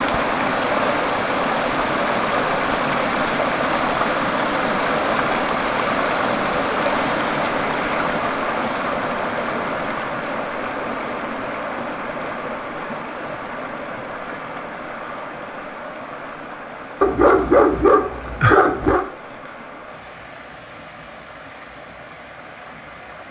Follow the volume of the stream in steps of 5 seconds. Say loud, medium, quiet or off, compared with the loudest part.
loud, loud, medium, quiet, quiet.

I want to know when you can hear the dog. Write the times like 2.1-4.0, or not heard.
17.0-19.1.